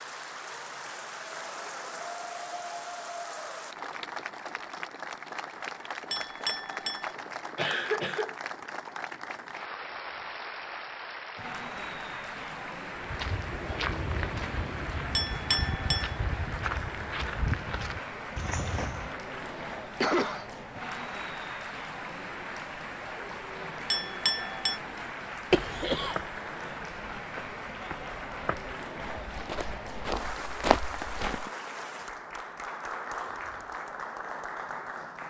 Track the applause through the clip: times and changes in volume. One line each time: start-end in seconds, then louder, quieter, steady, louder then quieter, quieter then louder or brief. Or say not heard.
0.0-35.2 steady.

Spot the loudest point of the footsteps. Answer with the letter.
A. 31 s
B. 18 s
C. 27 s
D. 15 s
A.